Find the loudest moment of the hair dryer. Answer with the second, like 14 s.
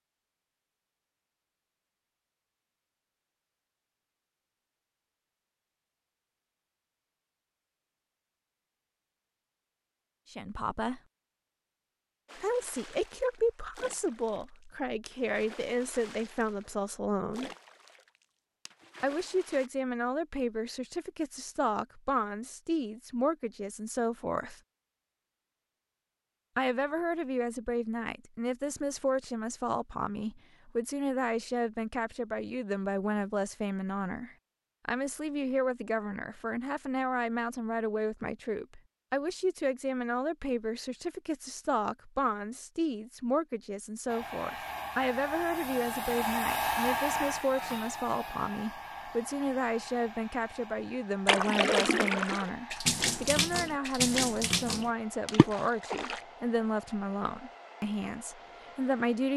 47 s.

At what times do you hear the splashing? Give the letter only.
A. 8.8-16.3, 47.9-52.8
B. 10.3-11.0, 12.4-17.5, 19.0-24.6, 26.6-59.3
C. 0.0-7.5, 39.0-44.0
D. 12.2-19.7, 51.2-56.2
D.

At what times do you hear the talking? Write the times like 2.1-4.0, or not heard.
10.3-11.0, 12.4-17.5, 19.0-24.6, 26.6-59.3.